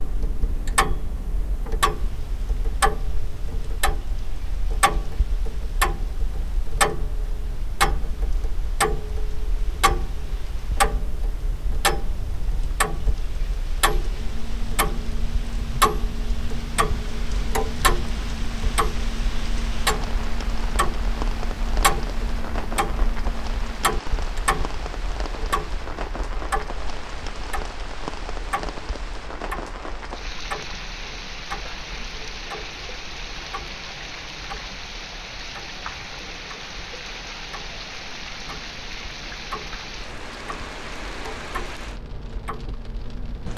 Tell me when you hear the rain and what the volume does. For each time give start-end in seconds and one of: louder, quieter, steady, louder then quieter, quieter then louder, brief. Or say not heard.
0.0-43.5 louder.